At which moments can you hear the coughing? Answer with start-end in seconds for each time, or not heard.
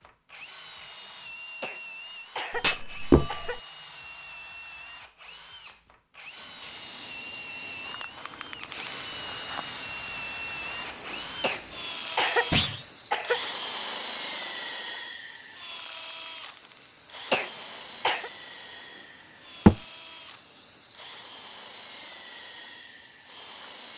1.6-3.6, 11.4-13.4, 17.3-18.3.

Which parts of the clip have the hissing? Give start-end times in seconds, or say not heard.
6.3-23.9.